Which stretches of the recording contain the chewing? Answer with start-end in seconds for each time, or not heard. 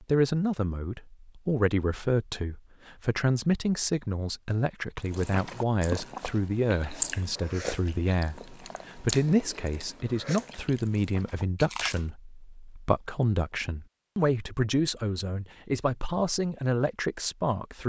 5.0-12.1.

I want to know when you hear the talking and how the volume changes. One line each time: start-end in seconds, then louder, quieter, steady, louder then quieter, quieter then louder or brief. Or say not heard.
0.0-17.8 steady.